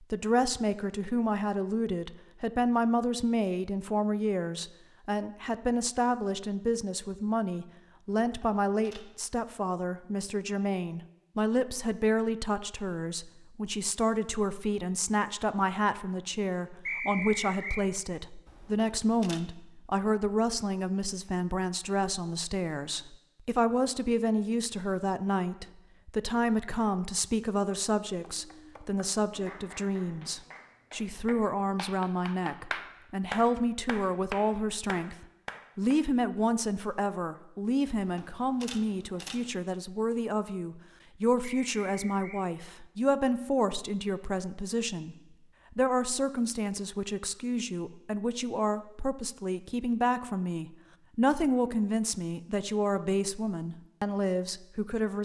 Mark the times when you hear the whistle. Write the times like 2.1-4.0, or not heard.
16.9-17.9, 41.4-42.5.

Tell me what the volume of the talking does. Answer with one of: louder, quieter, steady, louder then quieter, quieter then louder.
steady.